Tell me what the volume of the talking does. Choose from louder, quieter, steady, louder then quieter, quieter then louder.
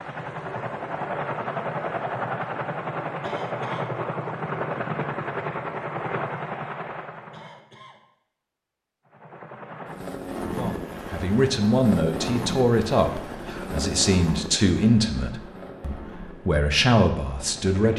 steady.